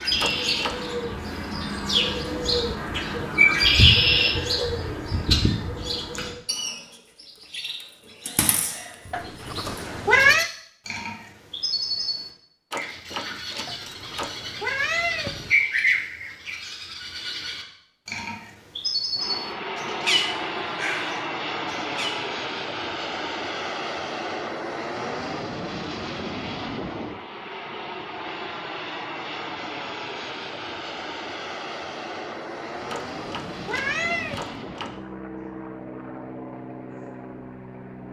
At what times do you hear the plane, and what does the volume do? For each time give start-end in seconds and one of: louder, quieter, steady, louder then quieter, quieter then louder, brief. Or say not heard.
19.1-38.0 quieter.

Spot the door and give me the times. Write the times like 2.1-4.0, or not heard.
0.2-0.9, 12.7-14.4, 32.9-34.9.